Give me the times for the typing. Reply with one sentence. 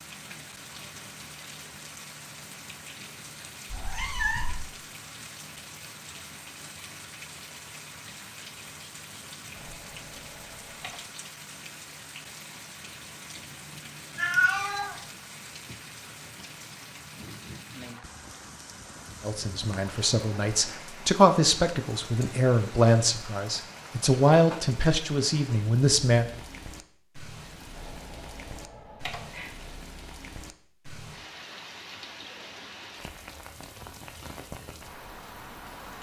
You can hear the typing from 9.6 to 11.1 s and from 27.8 to 29.4 s.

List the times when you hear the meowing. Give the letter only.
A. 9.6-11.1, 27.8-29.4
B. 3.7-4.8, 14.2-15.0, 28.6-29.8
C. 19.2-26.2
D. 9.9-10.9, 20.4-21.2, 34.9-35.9
B.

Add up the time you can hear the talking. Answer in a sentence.
The talking can be heard for 7 seconds in total.